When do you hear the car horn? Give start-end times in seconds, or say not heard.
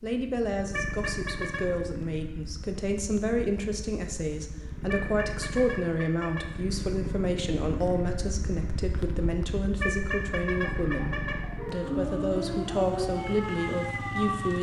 0.7-1.6, 4.8-6.5, 9.8-11.4.